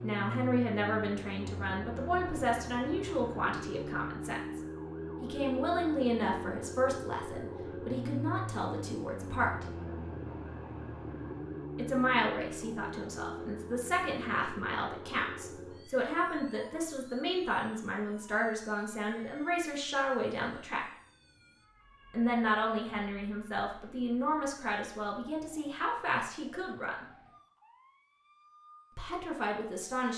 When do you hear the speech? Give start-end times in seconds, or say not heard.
0.0-4.6, 5.2-9.7, 11.8-20.8, 22.1-27.1, 28.9-30.1.